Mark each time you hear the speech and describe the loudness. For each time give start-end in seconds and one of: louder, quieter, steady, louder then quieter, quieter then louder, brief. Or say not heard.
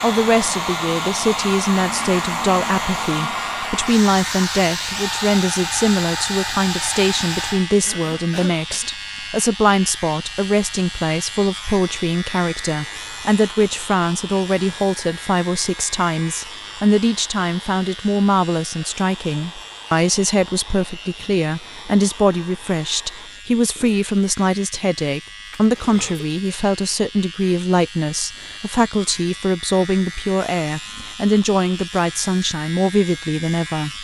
0.0-33.9 steady.